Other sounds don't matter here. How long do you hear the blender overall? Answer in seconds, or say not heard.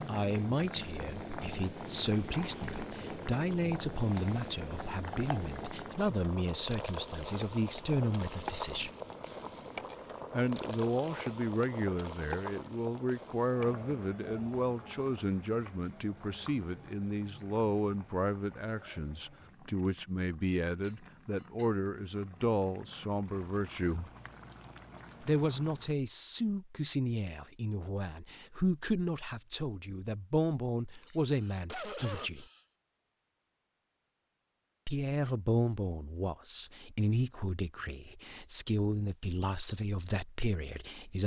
not heard.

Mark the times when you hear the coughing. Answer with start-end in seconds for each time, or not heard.
30.9-32.6.